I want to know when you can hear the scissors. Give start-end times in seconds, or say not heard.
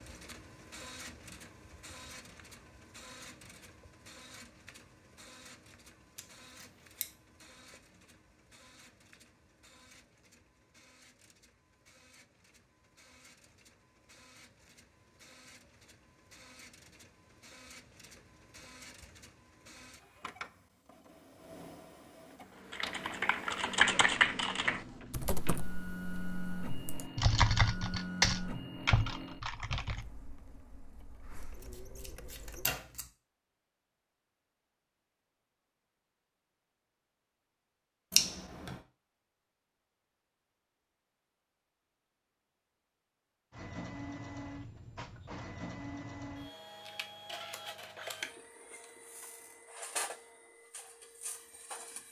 6.2-7.1, 31.6-33.1, 38.1-38.8.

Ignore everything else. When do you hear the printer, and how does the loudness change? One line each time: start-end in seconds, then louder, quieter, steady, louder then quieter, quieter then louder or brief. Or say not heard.
0.0-32.7 quieter then louder
43.5-52.0 quieter.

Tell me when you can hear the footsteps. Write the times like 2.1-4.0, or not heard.
not heard.